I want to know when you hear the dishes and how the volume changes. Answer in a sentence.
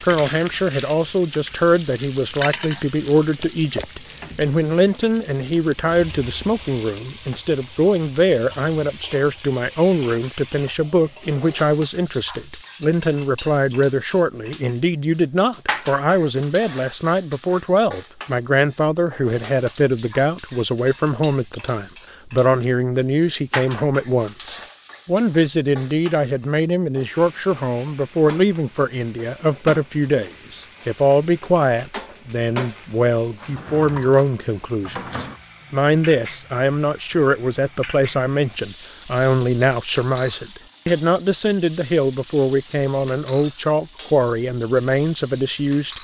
You can't hear the dishes here.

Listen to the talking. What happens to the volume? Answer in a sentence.
The loudness of the talking stays about the same.